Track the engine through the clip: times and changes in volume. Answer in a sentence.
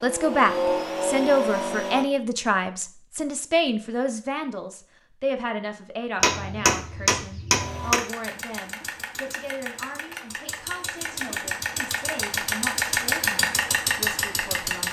The engine can be heard briefly from 0.0 to 2.0 s; and from 7.5 to 14.8 s, getting louder.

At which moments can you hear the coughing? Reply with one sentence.
You can't hear the coughing here.